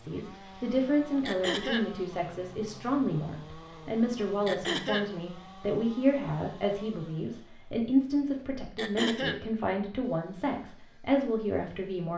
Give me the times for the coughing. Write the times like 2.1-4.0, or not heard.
1.2-1.9, 4.5-5.1, 8.8-9.4.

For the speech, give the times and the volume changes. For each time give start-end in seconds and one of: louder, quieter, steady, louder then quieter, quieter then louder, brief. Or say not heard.
0.0-12.1 steady.